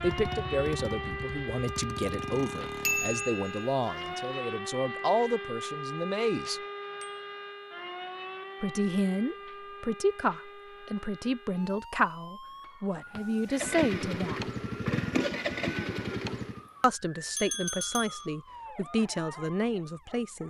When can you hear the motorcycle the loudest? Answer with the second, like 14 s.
15 s.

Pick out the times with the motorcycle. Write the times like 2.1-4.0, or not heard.
0.0-3.4, 13.4-16.6.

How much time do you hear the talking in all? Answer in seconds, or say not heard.
16 s.